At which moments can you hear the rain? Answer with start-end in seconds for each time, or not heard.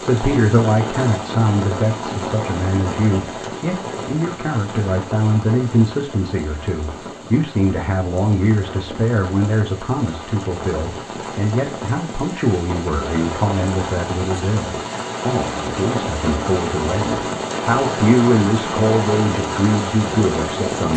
0.0-20.9.